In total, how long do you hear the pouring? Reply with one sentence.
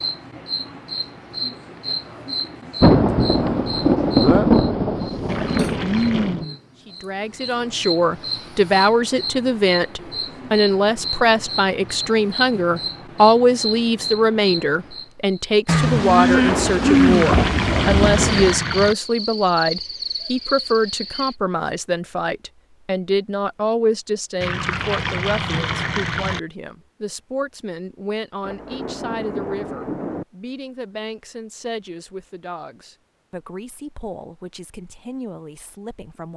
The pouring can be heard for 5 seconds in total.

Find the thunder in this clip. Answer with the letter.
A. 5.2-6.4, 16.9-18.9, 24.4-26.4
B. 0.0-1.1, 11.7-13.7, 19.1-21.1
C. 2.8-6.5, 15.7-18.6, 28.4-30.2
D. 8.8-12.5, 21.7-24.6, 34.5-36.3
C.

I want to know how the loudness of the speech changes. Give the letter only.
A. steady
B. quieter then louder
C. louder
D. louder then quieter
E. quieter
E.